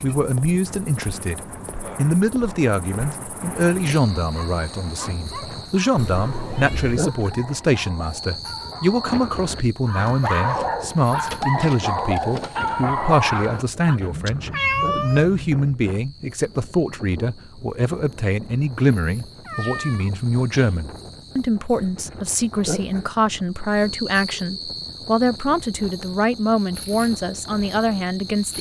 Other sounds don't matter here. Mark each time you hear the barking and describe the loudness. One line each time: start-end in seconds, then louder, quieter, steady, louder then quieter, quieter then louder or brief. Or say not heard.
4.2-14.0 louder.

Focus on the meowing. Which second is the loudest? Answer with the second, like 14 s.
15 s.